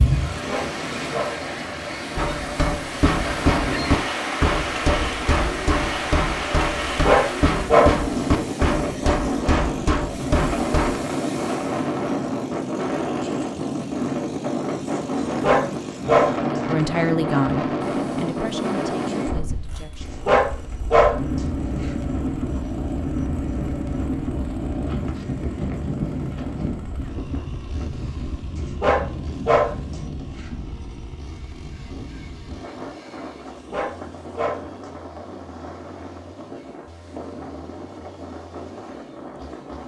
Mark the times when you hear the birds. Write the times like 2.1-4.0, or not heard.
not heard.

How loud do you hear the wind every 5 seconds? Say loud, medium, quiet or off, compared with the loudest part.
loud, loud, loud, loud, loud, medium, quiet, quiet.